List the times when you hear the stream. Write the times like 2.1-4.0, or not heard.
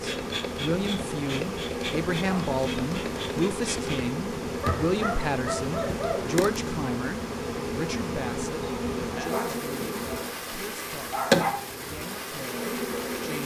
0.0-13.4.